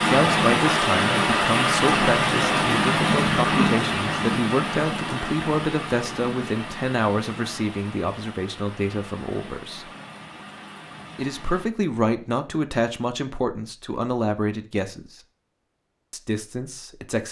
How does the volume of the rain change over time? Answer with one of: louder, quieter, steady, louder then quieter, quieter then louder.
quieter.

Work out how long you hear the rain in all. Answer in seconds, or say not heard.
12 s.